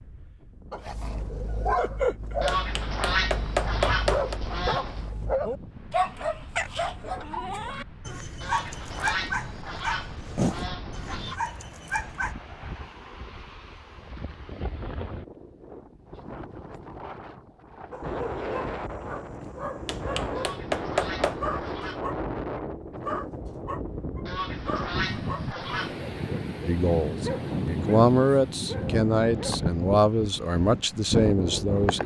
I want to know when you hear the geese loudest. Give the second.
3 s.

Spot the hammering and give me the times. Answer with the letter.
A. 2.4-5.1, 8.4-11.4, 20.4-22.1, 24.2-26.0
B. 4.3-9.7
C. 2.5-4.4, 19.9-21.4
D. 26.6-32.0
C.